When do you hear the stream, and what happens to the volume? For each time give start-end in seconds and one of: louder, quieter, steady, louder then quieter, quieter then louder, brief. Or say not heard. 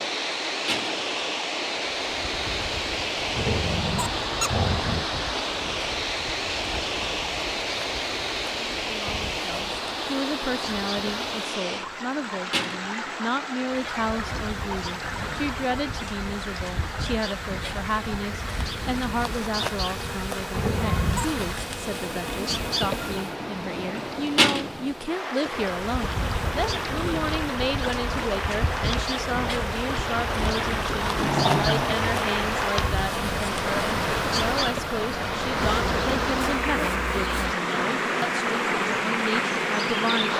0.0-40.3 quieter then louder.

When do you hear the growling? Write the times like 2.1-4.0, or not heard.
3.4-5.0, 20.5-21.4, 31.0-32.5.